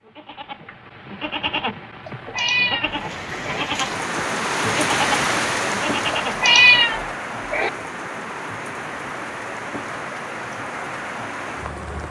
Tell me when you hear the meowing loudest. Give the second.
7 s.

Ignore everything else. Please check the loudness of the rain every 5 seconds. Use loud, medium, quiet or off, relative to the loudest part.
loud, loud, medium.